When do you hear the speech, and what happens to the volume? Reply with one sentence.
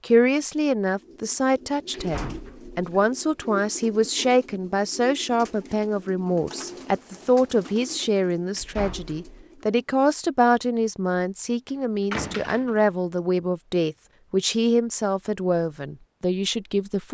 The speech can be heard from 0.1 to 17.0 s, at a steady volume.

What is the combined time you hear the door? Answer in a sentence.
You can hear the door for 3 seconds altogether.